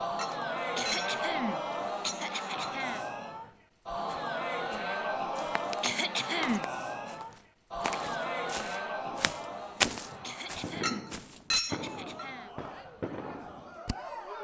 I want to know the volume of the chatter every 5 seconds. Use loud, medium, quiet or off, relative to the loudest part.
loud, loud, medium.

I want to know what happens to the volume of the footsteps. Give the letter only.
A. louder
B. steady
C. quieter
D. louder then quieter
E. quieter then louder
A.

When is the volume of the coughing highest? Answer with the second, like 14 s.
6 s.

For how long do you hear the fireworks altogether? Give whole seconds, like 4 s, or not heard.
5 s.